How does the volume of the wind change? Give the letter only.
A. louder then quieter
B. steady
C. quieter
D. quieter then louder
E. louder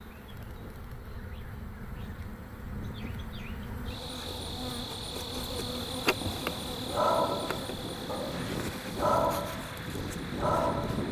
E.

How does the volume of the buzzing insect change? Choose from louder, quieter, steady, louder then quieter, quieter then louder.
louder then quieter.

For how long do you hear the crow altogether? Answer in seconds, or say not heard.
not heard.